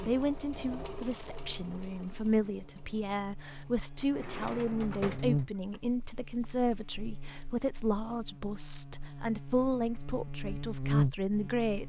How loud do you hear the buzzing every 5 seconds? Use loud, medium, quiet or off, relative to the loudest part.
quiet, medium, loud.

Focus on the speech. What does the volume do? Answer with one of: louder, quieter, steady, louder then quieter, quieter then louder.
steady.